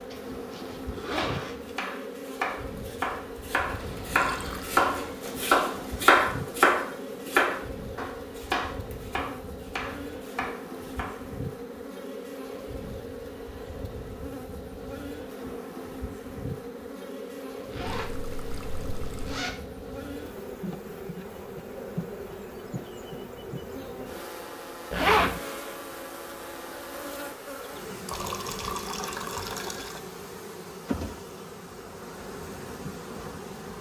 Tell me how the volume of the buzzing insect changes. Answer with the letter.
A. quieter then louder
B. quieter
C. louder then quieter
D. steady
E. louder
D.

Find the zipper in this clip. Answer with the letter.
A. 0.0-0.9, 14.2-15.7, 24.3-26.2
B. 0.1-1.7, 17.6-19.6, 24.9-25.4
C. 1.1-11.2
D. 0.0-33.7
B.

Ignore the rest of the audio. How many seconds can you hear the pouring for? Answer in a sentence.
The pouring can be heard for 4 seconds in total.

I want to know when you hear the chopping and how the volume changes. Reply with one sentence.
You can hear the chopping from 1.1 to 11.2 s, getting louder then quieter.